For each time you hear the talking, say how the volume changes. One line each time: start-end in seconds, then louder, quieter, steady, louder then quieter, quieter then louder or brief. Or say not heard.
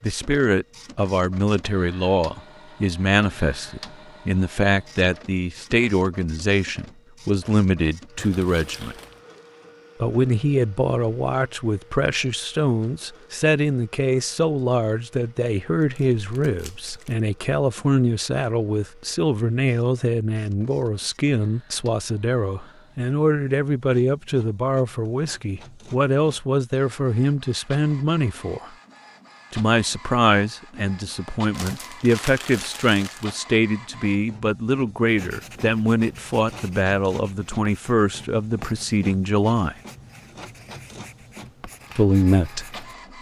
0.0-8.9 steady
10.0-28.7 steady
29.5-39.8 steady
42.0-42.9 brief.